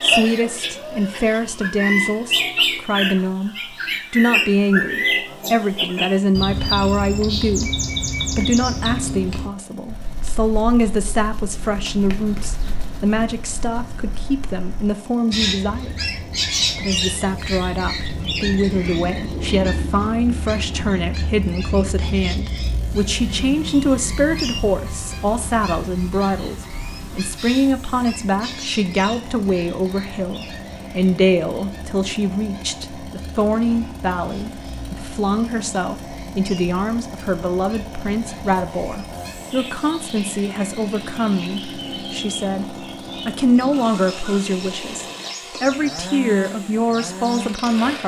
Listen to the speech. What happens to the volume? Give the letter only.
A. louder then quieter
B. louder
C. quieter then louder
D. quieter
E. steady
E.